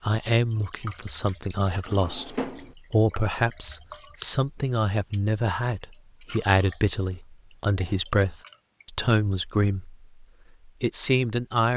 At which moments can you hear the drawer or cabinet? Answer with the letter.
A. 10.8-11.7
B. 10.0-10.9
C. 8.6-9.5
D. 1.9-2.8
D.